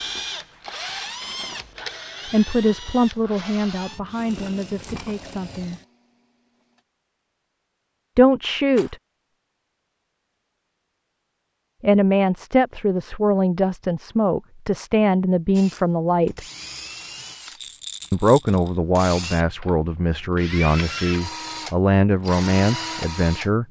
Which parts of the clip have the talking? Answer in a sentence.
The talking can be heard from 2.2 to 5.8 s, from 8.2 to 8.9 s, from 11.8 to 16.4 s and from 18.1 to 23.6 s.